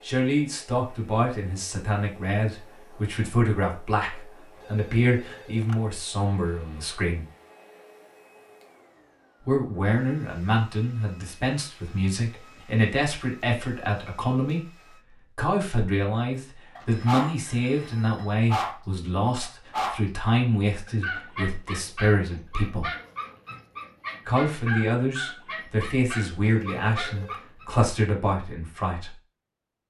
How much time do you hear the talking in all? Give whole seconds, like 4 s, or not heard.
25 s.